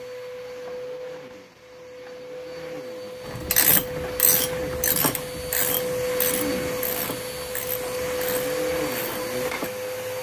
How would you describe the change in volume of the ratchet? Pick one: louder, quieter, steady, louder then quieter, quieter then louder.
quieter.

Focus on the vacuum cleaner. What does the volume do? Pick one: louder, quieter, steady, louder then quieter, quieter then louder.
louder.